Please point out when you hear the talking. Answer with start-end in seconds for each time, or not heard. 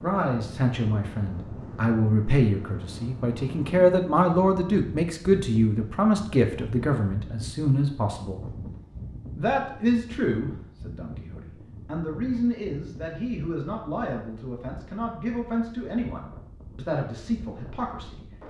0.0-8.4, 9.3-18.2.